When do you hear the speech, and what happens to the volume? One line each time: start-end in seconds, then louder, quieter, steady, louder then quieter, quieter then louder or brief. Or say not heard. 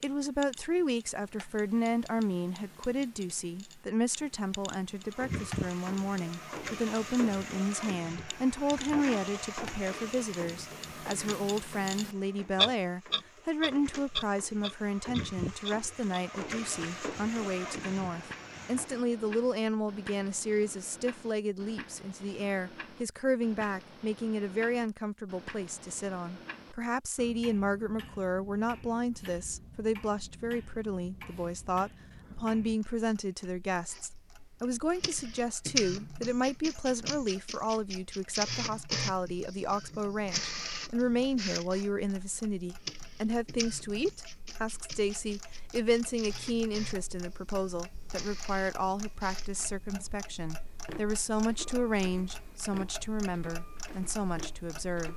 0.0-55.1 steady.